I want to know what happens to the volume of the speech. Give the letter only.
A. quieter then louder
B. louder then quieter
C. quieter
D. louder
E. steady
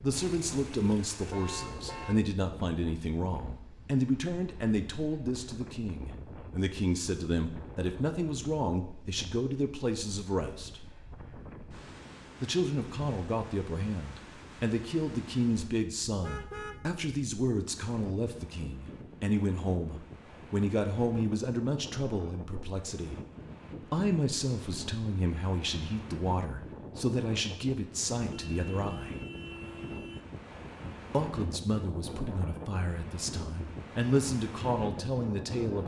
E.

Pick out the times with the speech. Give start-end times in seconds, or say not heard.
0.0-10.8, 12.4-23.2, 23.9-29.1, 31.1-35.8.